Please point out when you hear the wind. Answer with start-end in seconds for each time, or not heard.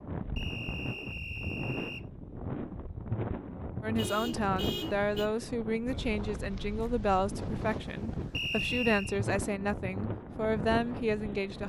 0.0-11.6.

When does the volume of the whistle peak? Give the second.
9 s.